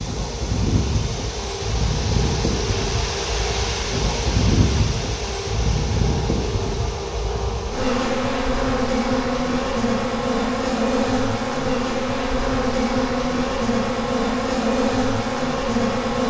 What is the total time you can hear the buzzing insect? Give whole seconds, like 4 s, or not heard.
16 s.